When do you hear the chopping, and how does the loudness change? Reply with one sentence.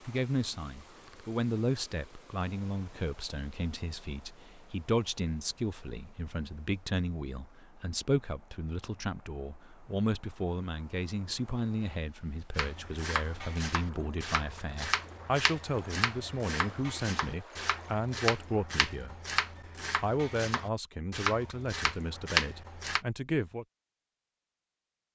You can hear the chopping from 12.6 to 23.0 s, getting louder.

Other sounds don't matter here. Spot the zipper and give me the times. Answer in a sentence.
The zipper can't be heard in this clip.